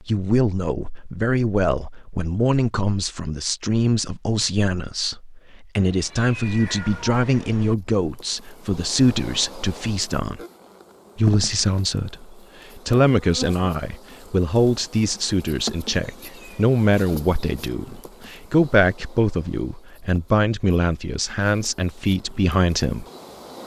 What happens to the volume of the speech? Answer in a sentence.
The loudness of the speech stays about the same.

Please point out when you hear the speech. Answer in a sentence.
The speech can be heard from 0.1 to 10.4 s and from 11.2 to 23.1 s.